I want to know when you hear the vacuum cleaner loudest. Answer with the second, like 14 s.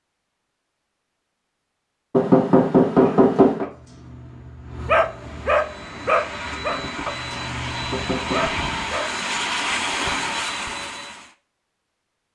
10 s.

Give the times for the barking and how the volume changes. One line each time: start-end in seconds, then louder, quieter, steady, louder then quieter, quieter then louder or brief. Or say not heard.
3.0-9.2 louder then quieter.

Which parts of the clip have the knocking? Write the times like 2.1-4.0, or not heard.
2.1-3.6, 7.9-8.6.